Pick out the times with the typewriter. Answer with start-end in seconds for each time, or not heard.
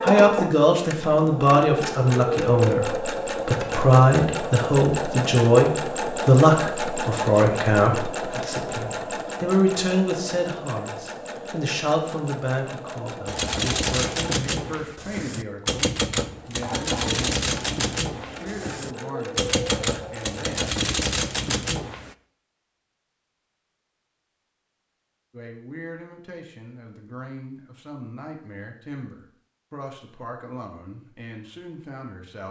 13.2-22.1.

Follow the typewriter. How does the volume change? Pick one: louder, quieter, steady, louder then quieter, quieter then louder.
steady.